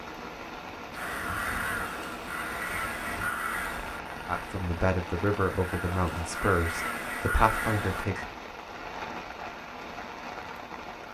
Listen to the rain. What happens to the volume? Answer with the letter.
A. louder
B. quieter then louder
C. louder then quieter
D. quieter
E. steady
E.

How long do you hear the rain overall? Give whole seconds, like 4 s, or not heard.
11 s.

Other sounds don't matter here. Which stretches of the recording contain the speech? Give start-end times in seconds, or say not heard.
4.2-8.2.